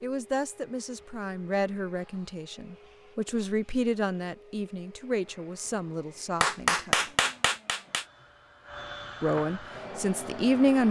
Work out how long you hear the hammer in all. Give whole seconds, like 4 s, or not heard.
2 s.